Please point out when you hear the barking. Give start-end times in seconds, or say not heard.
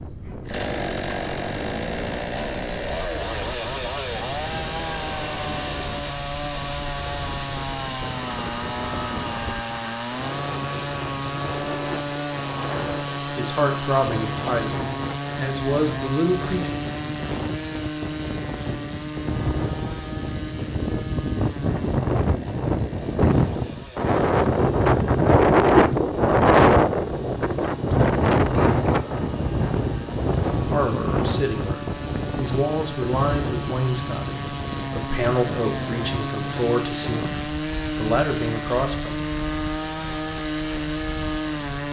not heard.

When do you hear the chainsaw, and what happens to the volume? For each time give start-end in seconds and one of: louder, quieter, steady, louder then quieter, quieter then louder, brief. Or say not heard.
0.0-41.8 quieter then louder.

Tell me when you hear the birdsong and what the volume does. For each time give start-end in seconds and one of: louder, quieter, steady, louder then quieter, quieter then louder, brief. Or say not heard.
not heard.